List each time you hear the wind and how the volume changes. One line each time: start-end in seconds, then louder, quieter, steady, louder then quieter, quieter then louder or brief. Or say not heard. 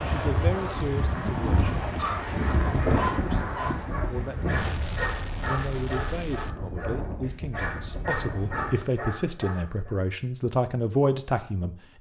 0.0-8.9 quieter.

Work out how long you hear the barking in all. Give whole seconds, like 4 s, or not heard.
9 s.